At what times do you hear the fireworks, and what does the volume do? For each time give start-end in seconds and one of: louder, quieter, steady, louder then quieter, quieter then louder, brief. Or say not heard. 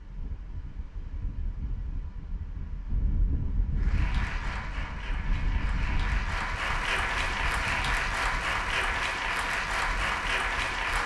not heard.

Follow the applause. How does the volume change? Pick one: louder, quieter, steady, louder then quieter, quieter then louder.
louder.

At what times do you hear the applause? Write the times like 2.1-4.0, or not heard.
3.8-11.0.